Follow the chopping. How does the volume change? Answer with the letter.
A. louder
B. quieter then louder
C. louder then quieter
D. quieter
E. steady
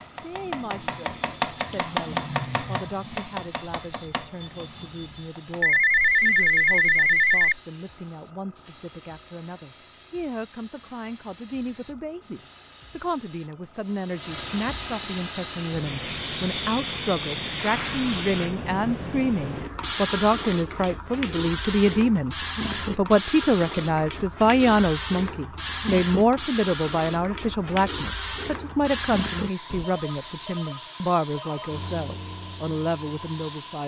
D.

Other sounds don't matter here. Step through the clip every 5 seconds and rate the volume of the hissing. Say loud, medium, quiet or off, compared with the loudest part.
quiet, quiet, medium, loud, loud, loud, medium.